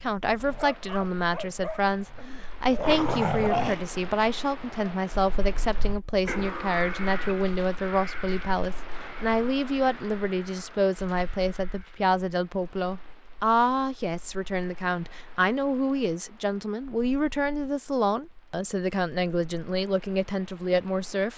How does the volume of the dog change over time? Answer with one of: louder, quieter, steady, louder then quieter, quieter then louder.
louder then quieter.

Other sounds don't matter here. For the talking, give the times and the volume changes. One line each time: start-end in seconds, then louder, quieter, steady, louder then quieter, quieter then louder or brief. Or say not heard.
0.0-21.3 steady.